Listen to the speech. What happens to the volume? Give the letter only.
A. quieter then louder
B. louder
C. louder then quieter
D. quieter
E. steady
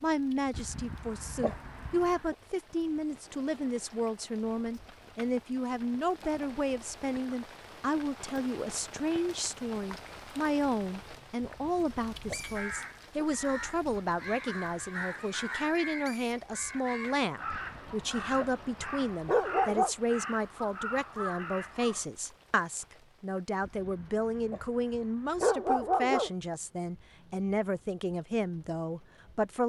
E.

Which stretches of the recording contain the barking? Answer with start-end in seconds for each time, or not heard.
0.5-2.4, 11.4-13.2, 17.5-19.9, 23.6-26.3.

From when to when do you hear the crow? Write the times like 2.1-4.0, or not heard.
12.6-22.1.